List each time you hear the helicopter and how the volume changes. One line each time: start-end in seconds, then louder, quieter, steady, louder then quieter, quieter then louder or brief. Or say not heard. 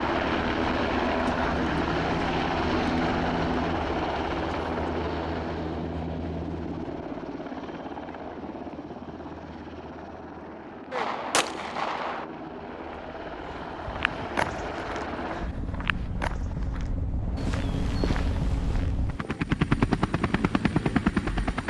0.0-21.6 quieter then louder.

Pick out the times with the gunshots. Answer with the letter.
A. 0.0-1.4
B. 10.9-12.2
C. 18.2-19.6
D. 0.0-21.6
B.